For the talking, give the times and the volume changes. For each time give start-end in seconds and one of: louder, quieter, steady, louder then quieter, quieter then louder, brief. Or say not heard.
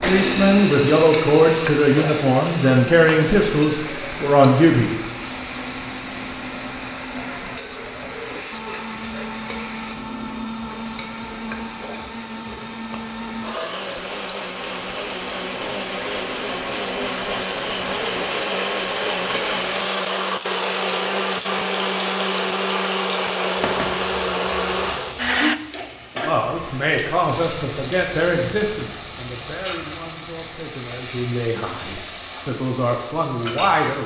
0.0-4.9 steady
26.2-34.0 quieter then louder.